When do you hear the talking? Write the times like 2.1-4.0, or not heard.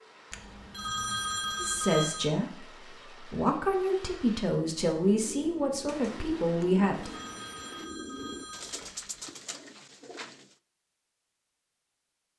1.6-7.1.